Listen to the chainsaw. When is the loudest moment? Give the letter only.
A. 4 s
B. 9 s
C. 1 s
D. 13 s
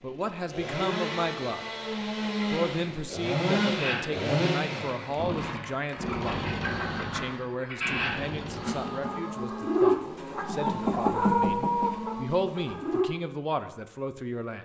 A.